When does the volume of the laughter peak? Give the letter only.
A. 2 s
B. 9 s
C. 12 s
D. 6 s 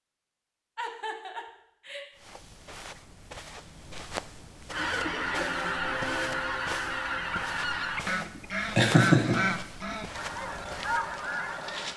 B.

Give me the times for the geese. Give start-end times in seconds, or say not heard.
4.7-11.9.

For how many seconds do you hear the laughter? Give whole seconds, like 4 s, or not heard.
3 s.